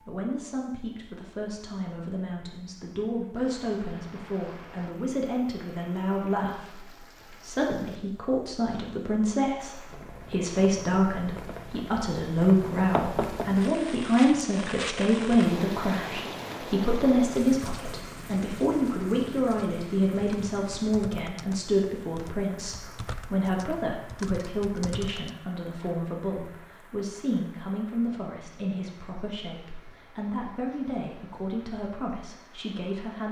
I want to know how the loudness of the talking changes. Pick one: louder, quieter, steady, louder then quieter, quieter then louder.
louder then quieter.